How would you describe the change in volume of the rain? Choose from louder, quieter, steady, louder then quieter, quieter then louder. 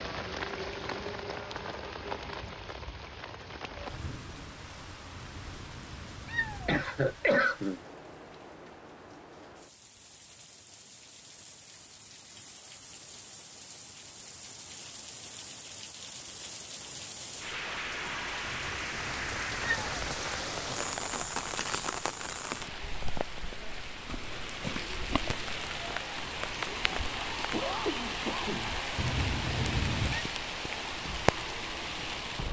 quieter then louder.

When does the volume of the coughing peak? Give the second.
7 s.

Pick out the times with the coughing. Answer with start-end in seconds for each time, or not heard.
6.7-7.8, 27.5-28.8.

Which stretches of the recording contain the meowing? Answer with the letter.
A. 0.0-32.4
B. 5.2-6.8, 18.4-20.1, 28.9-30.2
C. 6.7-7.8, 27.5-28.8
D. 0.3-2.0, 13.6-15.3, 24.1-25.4
B.